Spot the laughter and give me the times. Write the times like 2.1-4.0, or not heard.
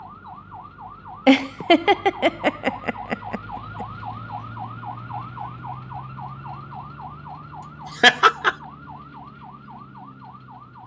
1.2-3.9, 7.6-8.6.